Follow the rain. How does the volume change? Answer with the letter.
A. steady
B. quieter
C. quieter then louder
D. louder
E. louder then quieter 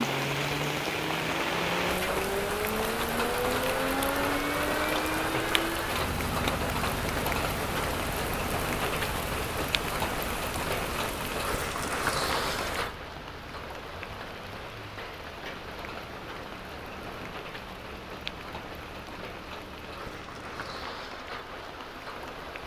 B.